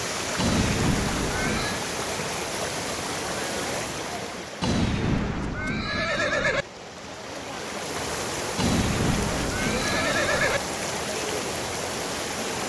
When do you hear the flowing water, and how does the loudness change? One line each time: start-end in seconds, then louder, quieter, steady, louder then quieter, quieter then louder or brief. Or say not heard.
0.0-12.6 quieter then louder.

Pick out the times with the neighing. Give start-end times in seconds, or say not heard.
0.3-1.9, 4.6-6.7, 8.6-10.6.